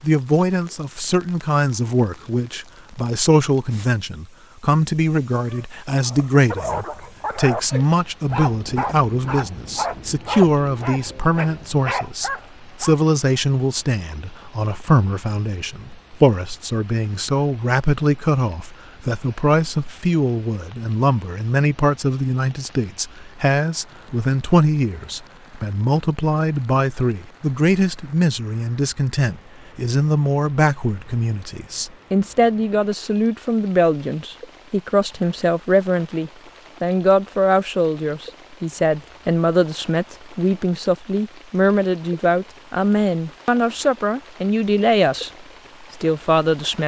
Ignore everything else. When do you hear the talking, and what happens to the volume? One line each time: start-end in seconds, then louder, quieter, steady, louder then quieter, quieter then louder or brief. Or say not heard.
0.0-45.3 steady
46.0-46.8 brief.